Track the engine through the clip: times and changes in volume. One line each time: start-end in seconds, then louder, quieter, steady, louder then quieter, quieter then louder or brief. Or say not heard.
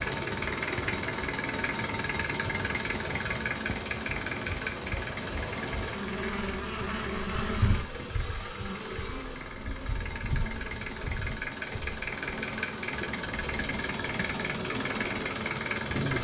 0.0-16.1 quieter then louder.